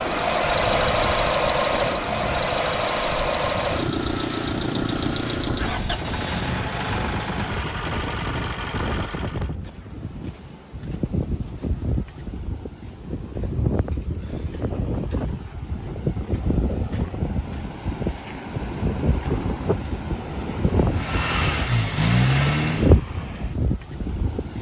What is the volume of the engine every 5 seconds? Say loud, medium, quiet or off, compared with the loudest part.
loud, medium, off, off, loud.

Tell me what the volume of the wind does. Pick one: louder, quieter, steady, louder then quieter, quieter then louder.
louder.